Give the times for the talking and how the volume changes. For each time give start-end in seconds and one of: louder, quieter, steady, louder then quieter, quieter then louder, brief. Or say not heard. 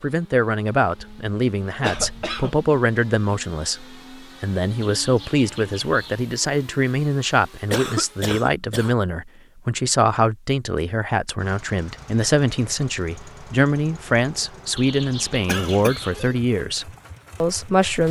0.0-18.0 steady.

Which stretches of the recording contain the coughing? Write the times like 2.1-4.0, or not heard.
1.0-2.6, 7.7-8.9, 15.4-16.1.